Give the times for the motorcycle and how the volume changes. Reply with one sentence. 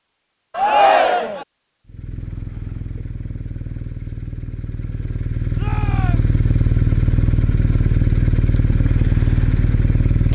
You can hear the motorcycle from 1.9 to 10.3 s, getting louder.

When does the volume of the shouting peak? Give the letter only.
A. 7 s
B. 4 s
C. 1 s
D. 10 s
C.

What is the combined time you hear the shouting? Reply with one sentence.
The shouting can be heard for 2 seconds in total.